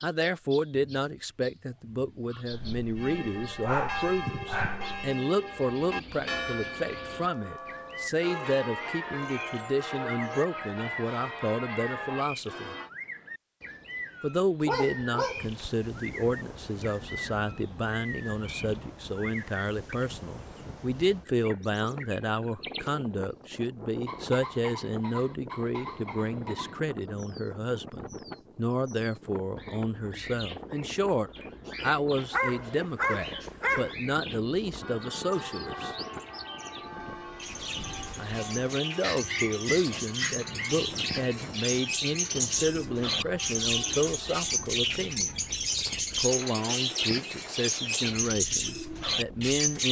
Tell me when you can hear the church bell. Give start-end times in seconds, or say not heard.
3.0-12.9, 34.8-44.8.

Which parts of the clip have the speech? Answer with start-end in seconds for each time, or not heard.
0.0-12.8, 14.2-36.0, 38.1-45.4, 46.1-49.8.